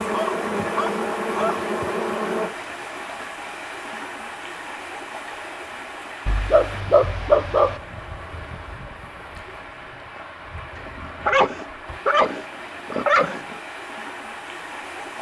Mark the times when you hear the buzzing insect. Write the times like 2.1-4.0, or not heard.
0.0-2.5.